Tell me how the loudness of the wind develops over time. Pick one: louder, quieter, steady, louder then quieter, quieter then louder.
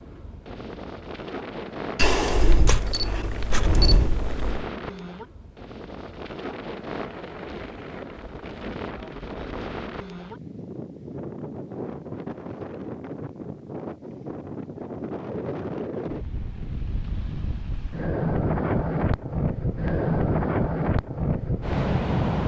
louder.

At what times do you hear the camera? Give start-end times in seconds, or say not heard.
1.9-4.7.